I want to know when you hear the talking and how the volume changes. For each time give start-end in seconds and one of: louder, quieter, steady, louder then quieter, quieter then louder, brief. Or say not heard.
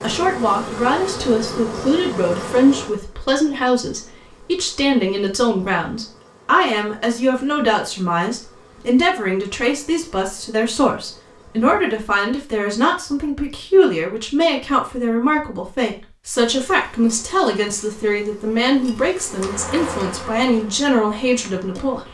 0.0-22.1 steady.